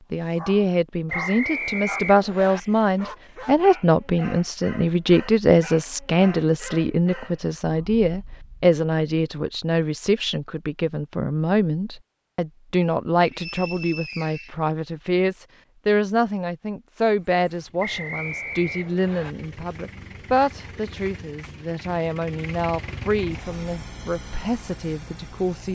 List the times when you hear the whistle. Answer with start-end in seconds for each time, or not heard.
1.1-2.6, 13.2-14.6, 17.8-19.4.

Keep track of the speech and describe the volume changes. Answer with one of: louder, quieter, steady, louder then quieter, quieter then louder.
quieter.